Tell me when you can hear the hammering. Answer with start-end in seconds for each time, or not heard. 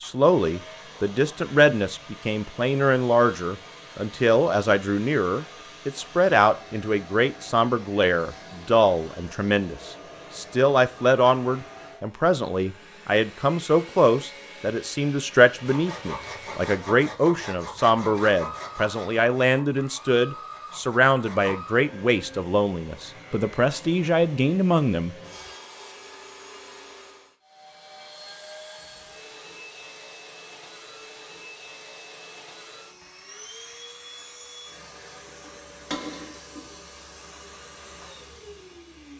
35.4-36.8.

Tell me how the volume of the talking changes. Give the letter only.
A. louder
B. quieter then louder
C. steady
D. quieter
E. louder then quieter
C.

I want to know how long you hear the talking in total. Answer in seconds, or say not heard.
25 s.